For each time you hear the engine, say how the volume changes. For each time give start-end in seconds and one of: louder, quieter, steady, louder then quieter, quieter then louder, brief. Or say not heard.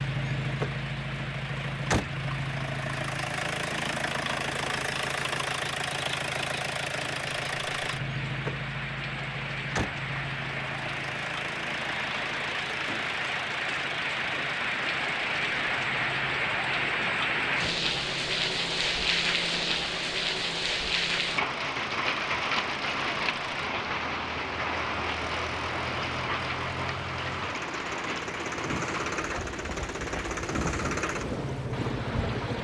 0.0-32.5 quieter then louder.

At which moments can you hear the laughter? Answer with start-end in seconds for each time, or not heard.
not heard.